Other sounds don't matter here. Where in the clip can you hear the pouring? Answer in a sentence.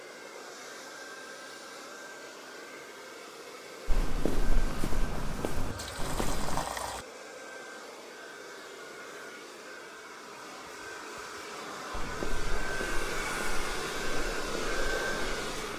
You can hear the pouring from 5.5 to 7.0 s.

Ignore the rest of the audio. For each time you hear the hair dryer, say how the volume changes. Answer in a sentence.
The hair dryer can be heard from 0.0 to 15.7 s, getting louder.